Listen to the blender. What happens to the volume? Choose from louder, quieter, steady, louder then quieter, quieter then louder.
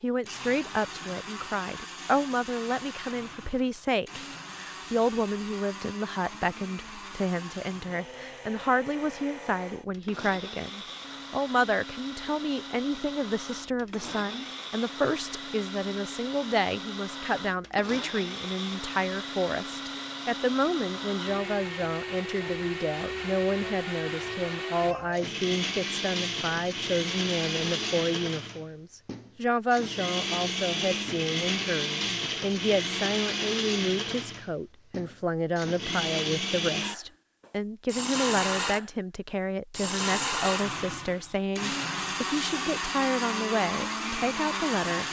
louder.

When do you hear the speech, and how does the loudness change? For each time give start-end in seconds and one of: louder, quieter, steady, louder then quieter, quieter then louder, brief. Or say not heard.
0.0-45.0 steady.